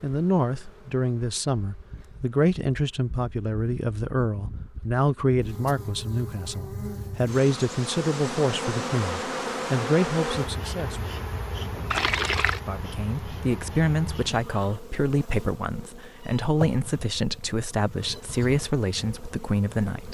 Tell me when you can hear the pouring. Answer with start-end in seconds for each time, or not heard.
11.9-12.6.